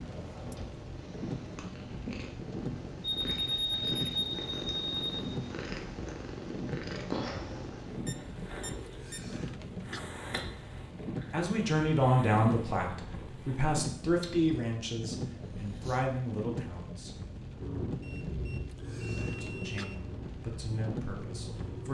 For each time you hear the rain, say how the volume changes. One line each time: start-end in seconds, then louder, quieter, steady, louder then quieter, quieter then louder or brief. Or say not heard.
0.0-21.9 steady.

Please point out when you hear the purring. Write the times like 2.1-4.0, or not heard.
0.0-16.1, 17.6-21.9.